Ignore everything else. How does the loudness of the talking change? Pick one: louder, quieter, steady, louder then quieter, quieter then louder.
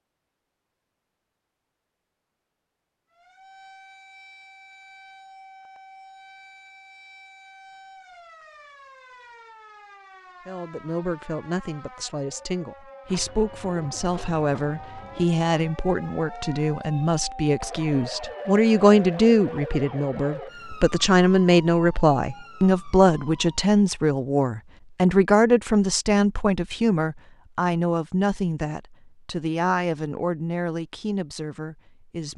louder then quieter.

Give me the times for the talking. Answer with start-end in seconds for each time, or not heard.
10.4-32.3.